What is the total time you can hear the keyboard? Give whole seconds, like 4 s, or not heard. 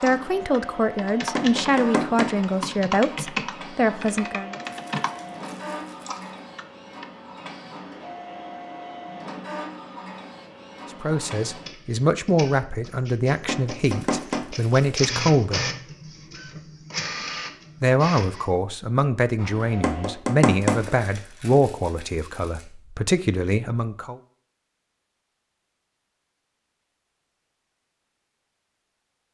7 s.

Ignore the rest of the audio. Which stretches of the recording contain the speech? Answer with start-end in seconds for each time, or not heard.
0.0-4.6, 11.0-15.6, 17.8-24.2.